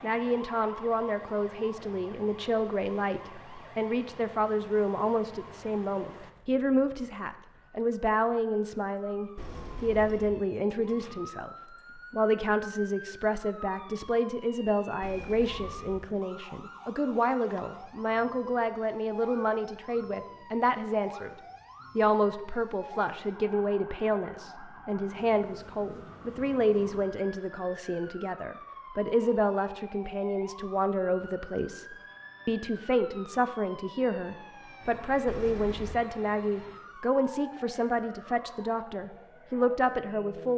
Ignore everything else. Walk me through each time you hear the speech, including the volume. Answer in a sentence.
You can hear the speech from 0.0 to 21.4 s, at a steady volume; and from 21.9 to 40.5 s, at a steady volume.